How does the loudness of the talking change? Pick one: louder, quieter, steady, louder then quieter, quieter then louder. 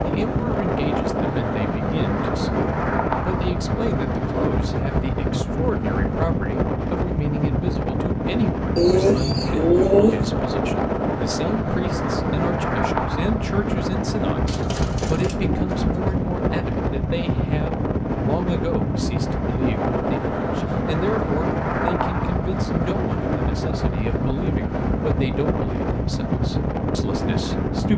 steady.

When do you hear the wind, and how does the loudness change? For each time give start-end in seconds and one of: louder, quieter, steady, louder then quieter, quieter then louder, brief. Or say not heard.
0.0-27.9 steady.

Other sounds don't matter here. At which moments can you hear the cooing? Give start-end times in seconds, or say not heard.
8.8-10.2, 14.4-16.2.